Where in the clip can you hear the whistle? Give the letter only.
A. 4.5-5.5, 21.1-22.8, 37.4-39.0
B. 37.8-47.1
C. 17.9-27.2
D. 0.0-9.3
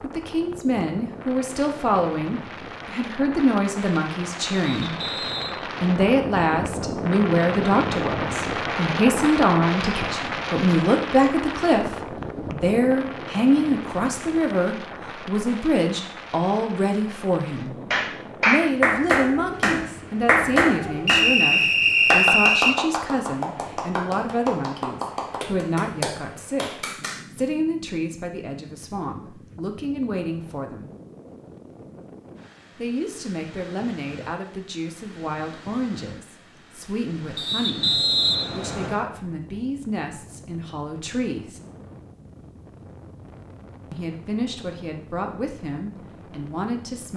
A.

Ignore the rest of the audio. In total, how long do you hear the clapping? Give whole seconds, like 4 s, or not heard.
9 s.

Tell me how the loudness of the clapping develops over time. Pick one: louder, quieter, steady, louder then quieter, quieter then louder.
quieter.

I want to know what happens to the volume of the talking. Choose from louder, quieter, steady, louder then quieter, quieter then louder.
quieter.